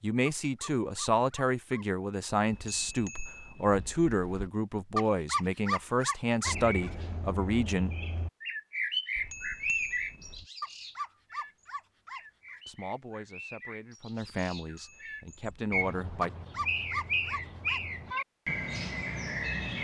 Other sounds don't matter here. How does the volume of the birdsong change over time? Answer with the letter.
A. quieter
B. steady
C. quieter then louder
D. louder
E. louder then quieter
C.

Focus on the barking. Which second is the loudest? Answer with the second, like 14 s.
5 s.